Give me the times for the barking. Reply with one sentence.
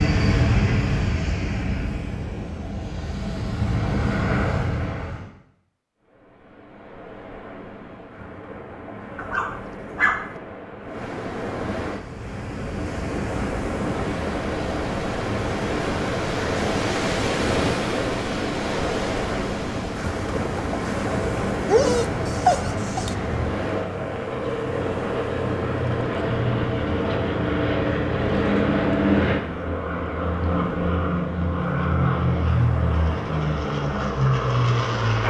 The barking can be heard from 9.2 to 10.3 s and from 21.6 to 23.1 s.